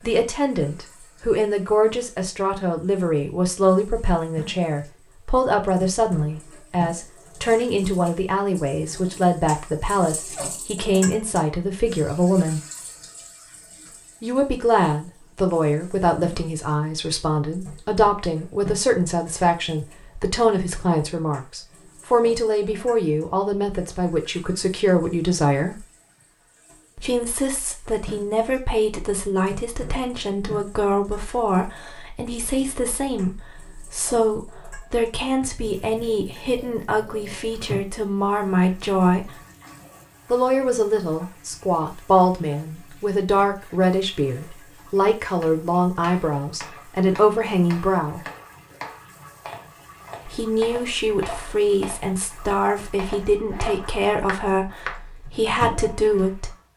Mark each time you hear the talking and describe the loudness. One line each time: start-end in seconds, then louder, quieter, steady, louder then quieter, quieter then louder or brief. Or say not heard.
0.0-12.6 steady
14.2-25.9 steady
26.9-39.4 steady
40.3-48.2 steady
50.2-56.5 steady.